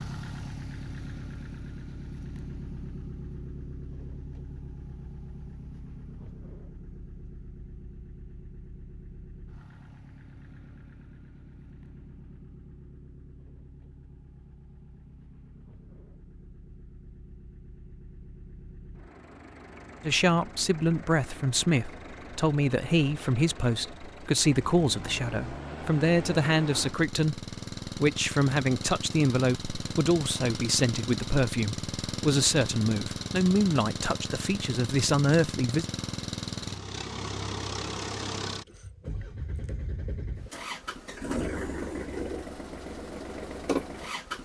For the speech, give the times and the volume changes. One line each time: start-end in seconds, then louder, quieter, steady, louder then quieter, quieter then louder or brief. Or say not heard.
20.0-35.9 steady.